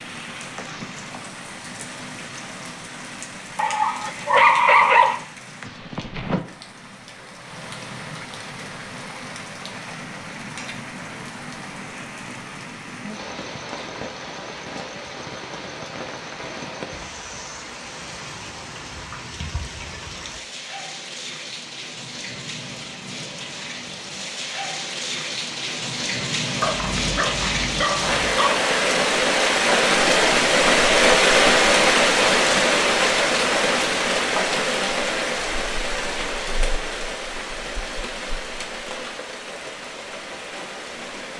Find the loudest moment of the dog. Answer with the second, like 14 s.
5 s.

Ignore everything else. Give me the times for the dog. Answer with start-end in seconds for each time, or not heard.
3.5-5.2, 26.6-28.6.